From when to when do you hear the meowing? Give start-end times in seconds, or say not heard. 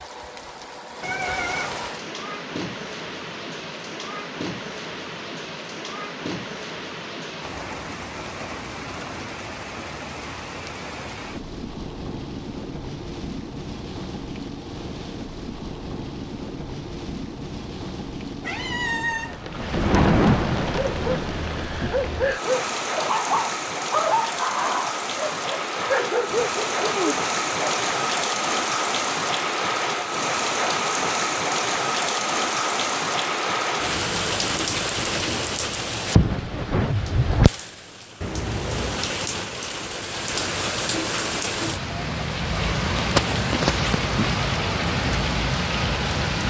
1.0-1.9, 18.4-19.4, 38.2-39.1.